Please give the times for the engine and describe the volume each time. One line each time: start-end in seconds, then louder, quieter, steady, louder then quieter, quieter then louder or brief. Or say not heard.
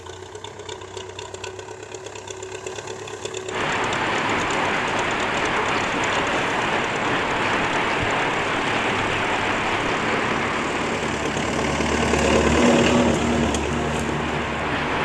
0.0-14.9 louder.